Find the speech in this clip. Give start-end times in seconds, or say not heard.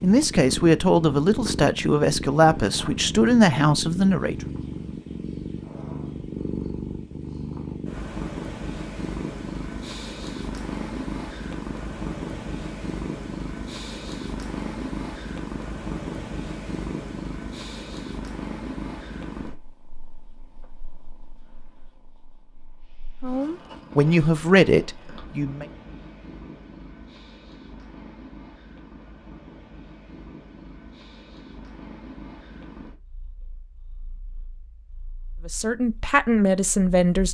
0.0-4.3, 23.2-25.6, 35.5-37.2.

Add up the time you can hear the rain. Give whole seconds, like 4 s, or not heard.
not heard.